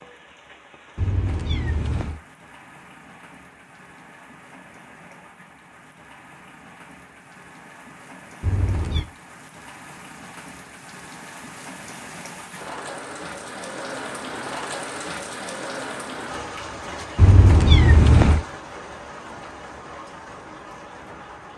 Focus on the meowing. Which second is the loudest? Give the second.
18 s.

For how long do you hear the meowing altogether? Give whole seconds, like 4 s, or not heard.
3 s.